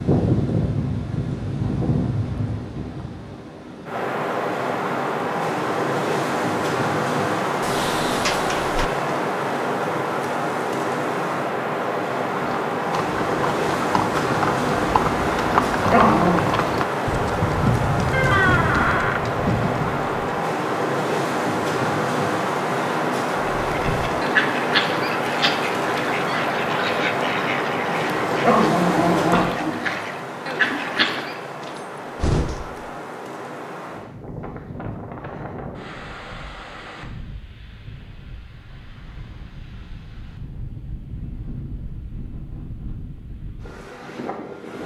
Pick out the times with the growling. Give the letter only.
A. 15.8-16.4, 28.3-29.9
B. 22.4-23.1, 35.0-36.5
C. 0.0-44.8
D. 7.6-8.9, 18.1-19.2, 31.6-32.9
A.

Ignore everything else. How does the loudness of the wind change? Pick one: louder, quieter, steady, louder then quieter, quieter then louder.
quieter.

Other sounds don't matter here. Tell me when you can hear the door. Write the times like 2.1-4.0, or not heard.
7.6-8.9, 18.1-19.2, 31.6-32.9.